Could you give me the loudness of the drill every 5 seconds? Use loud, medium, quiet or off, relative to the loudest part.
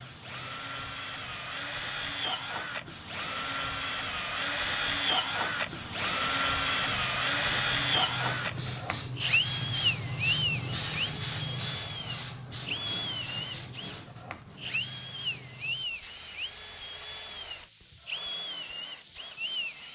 medium, loud, medium, medium.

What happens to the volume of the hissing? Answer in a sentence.
The loudness of the hissing goes up, then down.